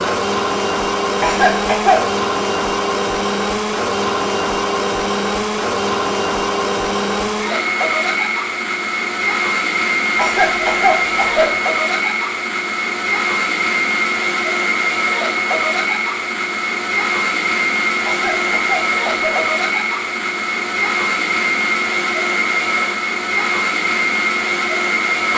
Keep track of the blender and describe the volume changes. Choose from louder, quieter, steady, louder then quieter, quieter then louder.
steady.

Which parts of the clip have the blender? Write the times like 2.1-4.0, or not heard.
0.0-25.3.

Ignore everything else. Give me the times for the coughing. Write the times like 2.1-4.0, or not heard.
1.2-2.1, 10.2-11.6, 18.0-19.4.